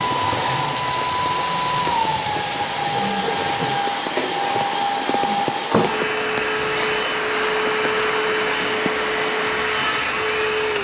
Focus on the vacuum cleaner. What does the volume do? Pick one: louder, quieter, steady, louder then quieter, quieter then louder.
steady.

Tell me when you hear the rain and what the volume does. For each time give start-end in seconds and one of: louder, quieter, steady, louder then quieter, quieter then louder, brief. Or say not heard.
0.0-10.8 steady.